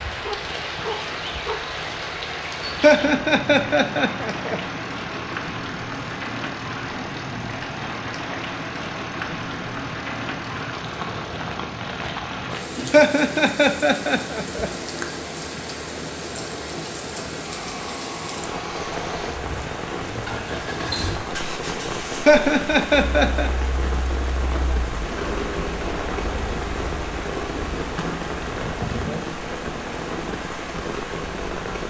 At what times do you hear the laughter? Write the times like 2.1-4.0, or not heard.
2.8-4.6, 12.9-14.7, 22.2-23.5.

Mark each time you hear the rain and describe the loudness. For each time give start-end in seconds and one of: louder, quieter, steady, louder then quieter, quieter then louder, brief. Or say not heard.
0.0-31.8 steady.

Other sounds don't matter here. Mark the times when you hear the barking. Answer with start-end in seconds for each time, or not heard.
0.2-1.7.